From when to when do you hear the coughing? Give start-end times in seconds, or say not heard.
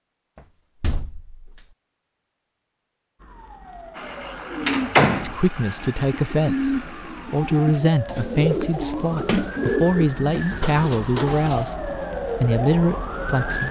not heard.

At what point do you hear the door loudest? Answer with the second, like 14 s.
5 s.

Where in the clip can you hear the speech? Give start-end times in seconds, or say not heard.
5.2-13.6.